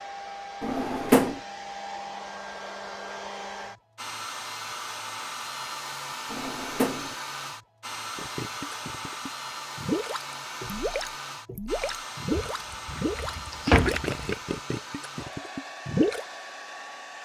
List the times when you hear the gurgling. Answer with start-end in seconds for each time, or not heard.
8.2-16.2.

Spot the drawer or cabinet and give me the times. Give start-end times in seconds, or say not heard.
0.6-1.4, 6.3-7.2, 12.3-14.1.